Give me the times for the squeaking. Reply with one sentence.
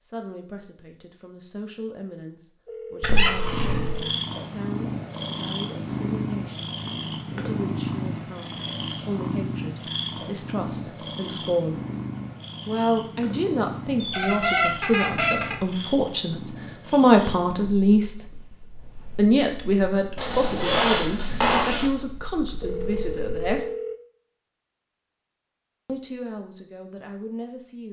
The squeaking can be heard from 3.0 to 4.0 s, from 14.0 to 15.8 s and from 20.1 to 21.9 s.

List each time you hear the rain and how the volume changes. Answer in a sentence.
You can't hear the rain here.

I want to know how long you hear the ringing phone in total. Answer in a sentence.
You can hear the ringing phone for 3 seconds altogether.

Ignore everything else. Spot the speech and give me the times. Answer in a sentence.
You can hear the speech from 0.0 to 11.8 s, from 12.7 to 18.3 s, from 19.1 to 23.7 s and from 25.9 to 27.8 s.